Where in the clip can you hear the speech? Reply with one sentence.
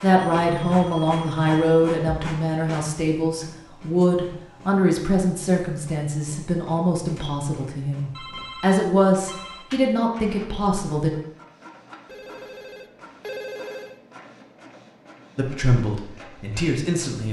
The speech can be heard from 0.0 to 11.1 s and from 15.3 to 17.2 s.